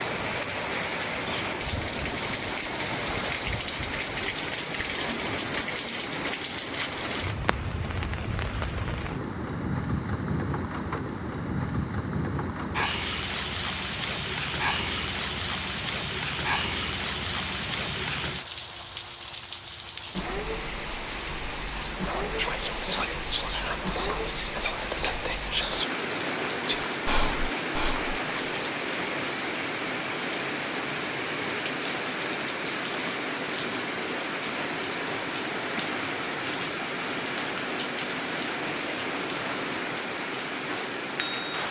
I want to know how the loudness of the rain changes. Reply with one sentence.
The volume of the rain stays about the same.